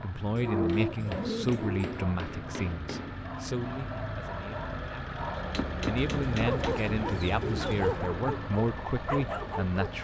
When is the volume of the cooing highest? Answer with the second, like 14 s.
1 s.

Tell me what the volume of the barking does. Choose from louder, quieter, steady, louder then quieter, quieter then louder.
louder.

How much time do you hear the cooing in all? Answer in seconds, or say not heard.
4 s.